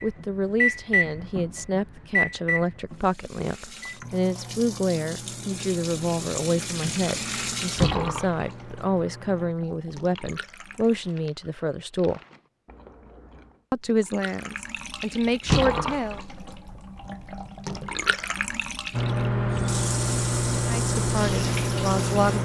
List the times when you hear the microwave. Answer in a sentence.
The microwave can be heard from 0.0 to 9.6 s and from 18.9 to 22.4 s.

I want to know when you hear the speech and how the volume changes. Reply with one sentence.
The speech can be heard from 0.0 to 12.2 s, at a steady volume; briefly from 13.7 to 16.2 s; and briefly from 20.6 to 22.4 s.